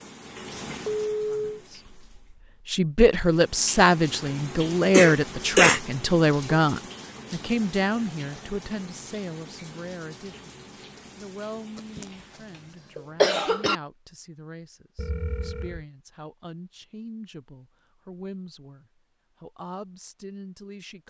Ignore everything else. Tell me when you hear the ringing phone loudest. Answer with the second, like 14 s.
1 s.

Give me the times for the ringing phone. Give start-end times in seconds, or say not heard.
0.8-1.6, 14.9-15.8.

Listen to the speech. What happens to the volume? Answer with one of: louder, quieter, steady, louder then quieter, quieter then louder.
quieter.